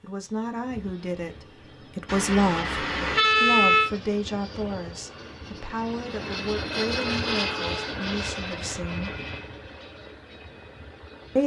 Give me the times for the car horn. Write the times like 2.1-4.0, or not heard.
2.0-3.9, 7.0-8.0.